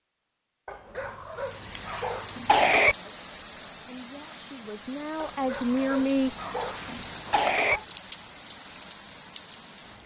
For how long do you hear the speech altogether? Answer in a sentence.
The speech can be heard for 3 seconds in total.